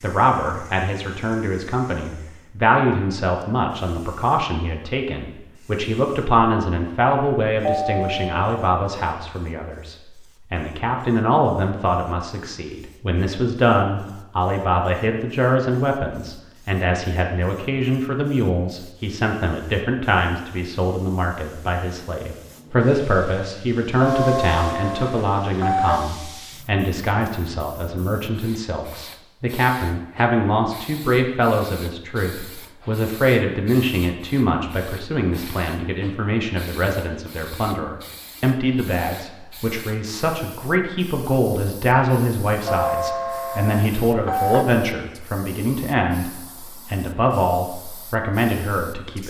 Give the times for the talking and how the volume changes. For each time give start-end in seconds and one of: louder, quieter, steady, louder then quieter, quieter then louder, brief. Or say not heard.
0.0-49.2 steady.